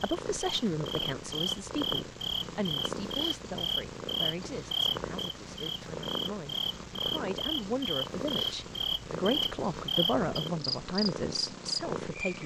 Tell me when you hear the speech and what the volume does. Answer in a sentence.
You can hear the speech from 0.0 to 12.4 s, getting quieter then louder.